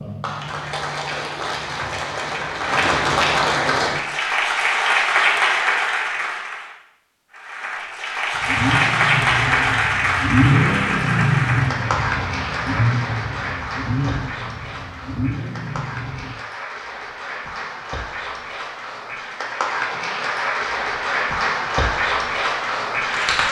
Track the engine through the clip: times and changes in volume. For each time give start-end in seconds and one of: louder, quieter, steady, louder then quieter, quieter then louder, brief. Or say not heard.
8.3-16.4 louder then quieter.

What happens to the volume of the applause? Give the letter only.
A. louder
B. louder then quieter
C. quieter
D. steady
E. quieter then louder
E.